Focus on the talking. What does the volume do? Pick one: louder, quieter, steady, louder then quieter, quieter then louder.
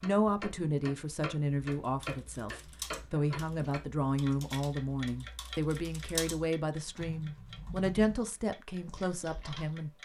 steady.